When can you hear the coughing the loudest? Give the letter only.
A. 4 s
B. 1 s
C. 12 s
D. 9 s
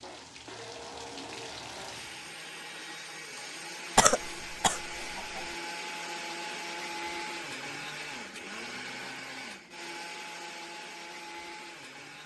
A.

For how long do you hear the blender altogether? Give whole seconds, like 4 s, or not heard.
12 s.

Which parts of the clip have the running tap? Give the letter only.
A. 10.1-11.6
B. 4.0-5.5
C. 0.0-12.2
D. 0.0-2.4
D.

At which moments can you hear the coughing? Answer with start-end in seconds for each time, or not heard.
4.0-5.5.